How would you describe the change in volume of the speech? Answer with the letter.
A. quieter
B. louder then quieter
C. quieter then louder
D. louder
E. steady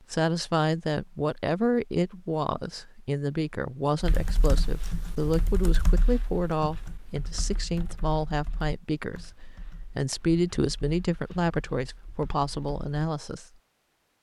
E.